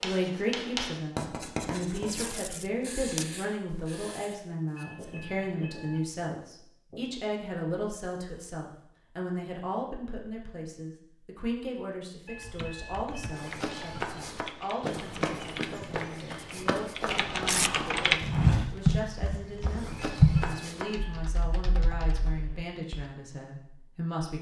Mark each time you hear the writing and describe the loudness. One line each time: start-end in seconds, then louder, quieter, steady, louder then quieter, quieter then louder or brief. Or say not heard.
0.0-7.0 quieter.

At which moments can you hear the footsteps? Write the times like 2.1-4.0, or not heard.
13.3-20.9.